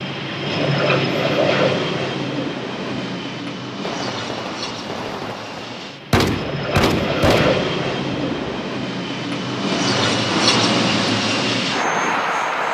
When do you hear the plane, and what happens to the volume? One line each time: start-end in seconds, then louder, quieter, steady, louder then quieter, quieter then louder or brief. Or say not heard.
0.0-12.6 quieter then louder.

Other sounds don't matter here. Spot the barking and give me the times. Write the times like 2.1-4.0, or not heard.
not heard.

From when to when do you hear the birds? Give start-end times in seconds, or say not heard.
not heard.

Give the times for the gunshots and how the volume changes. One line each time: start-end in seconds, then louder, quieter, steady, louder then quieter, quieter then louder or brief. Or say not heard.
3.8-8.6 louder then quieter.